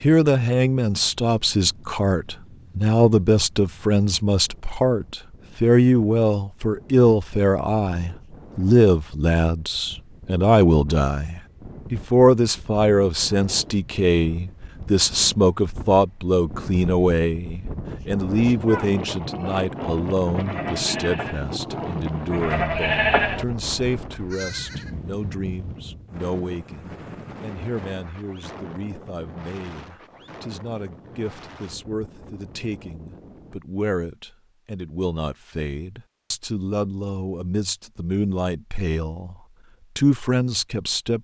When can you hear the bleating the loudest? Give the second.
23 s.